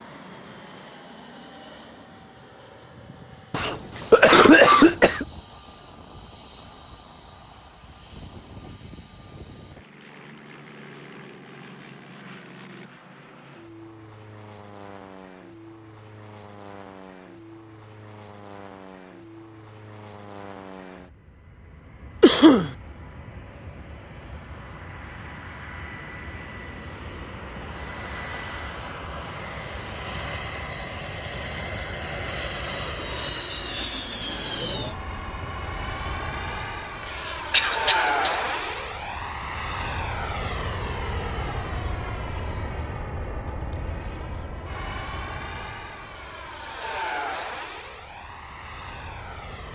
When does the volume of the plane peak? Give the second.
38 s.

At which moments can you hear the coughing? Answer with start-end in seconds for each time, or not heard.
3.5-5.2, 22.2-22.7, 37.0-38.3.